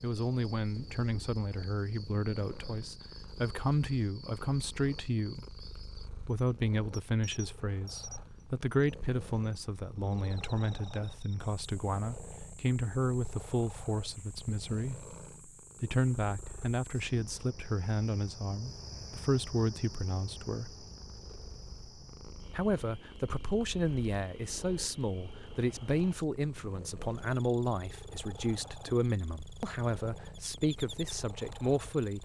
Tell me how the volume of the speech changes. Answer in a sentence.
The loudness of the speech stays about the same.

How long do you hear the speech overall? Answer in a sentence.
You can hear the speech for 29 seconds altogether.